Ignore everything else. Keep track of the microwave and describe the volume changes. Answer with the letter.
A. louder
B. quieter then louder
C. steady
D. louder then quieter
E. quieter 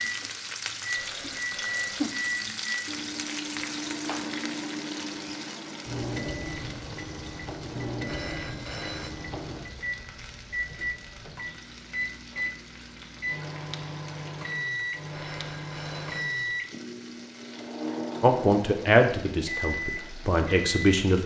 C.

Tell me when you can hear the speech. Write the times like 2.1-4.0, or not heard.
18.2-21.2.